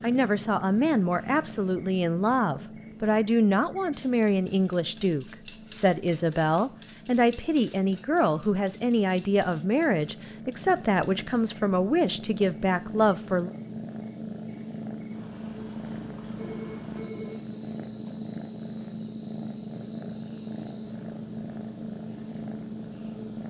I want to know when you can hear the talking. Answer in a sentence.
You can hear the talking from 0.0 to 13.5 s.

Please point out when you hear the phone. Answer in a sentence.
The phone can be heard from 16.4 to 17.4 s.